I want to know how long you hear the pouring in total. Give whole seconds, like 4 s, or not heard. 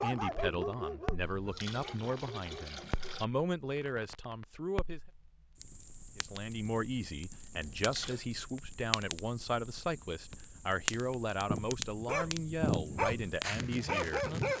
3 s.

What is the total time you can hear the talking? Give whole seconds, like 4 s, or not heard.
13 s.